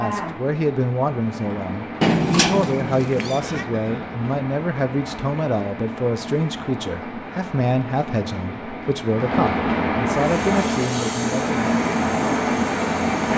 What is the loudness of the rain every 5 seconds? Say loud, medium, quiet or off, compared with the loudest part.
medium, medium, loud.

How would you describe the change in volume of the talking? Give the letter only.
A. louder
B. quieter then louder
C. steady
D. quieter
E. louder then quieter
C.